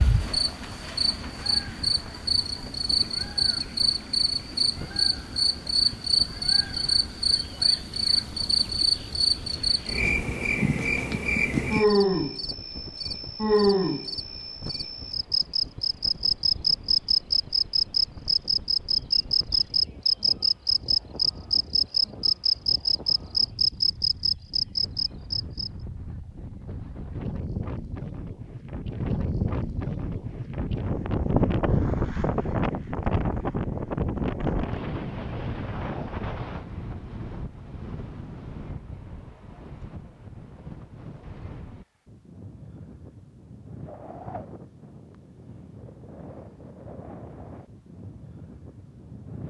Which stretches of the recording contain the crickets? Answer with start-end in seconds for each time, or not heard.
0.0-25.7.